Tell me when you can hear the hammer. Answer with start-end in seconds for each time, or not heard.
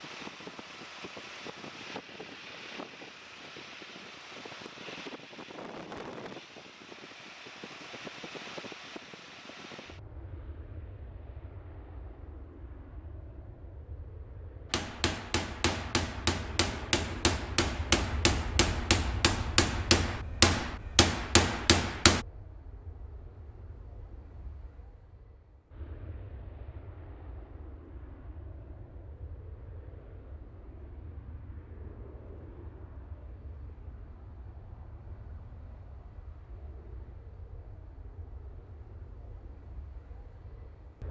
14.7-22.2.